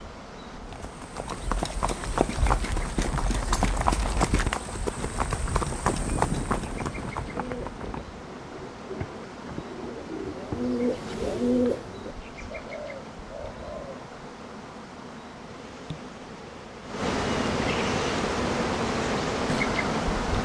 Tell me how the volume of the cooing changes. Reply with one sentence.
The volume of the cooing goes up, then down.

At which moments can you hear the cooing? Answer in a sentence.
The cooing can be heard from 7.3 to 14.1 s.